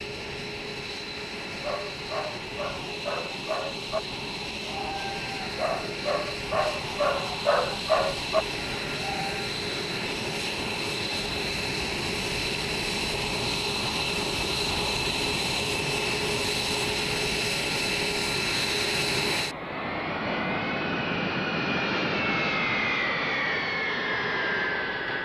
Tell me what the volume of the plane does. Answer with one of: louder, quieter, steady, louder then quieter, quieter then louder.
louder.